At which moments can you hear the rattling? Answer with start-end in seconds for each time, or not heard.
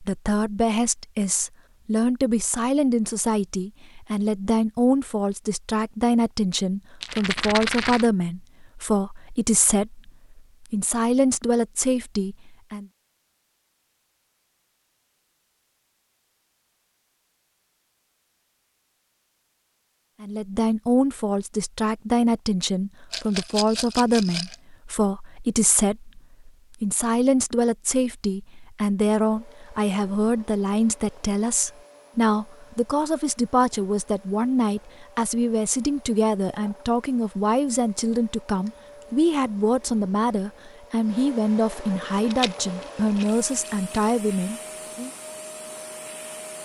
7.0-8.1, 23.1-24.6, 42.2-44.1.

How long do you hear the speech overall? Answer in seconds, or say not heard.
38 s.